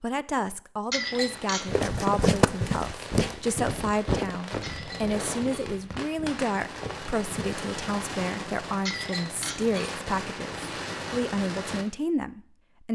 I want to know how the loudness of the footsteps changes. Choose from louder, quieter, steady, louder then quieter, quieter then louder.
quieter.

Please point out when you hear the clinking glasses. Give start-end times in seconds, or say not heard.
0.9-1.9, 4.6-5.8, 8.8-10.0.